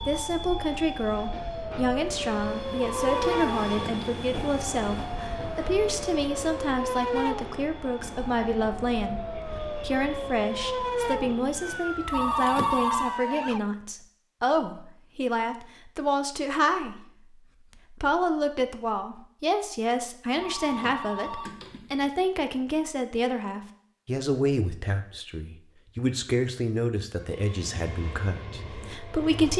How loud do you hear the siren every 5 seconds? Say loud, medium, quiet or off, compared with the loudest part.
loud, loud, loud, off, off, off.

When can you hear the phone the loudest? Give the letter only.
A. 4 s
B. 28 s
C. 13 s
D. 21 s
C.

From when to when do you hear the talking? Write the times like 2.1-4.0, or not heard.
0.1-17.1, 17.9-29.5.